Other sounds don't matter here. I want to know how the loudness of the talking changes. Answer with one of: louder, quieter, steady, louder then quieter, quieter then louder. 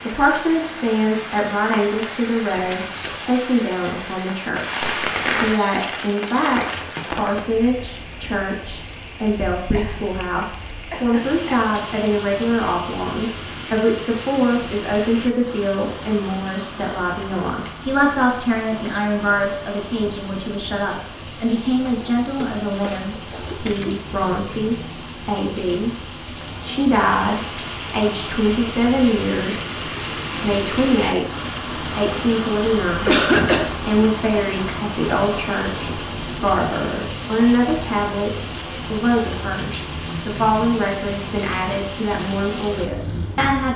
steady.